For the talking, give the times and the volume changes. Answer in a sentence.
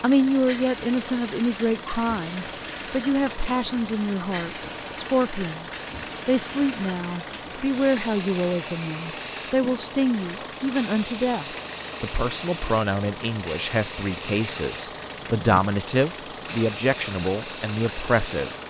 You can hear the talking from 0.0 to 18.5 s, at a steady volume.